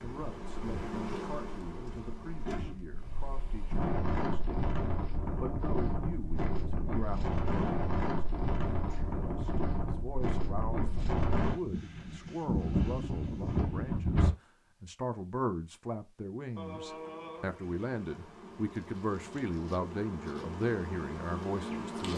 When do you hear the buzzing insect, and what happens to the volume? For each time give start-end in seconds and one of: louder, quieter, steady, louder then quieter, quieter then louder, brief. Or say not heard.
0.0-2.8 brief
16.4-22.1 louder.